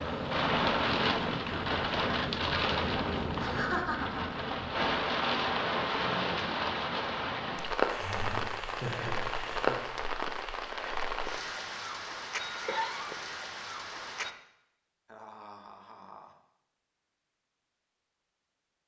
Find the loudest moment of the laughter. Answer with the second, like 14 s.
4 s.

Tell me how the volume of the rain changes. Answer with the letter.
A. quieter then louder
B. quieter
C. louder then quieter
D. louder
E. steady
B.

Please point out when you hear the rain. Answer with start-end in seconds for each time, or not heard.
0.0-14.3.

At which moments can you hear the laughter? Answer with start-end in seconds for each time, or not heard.
3.4-4.3, 7.8-9.8, 15.1-16.4.